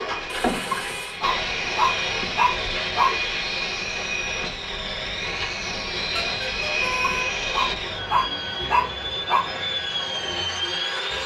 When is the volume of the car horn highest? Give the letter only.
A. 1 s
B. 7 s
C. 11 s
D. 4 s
B.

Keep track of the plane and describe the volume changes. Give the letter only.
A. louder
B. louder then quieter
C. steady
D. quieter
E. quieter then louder
C.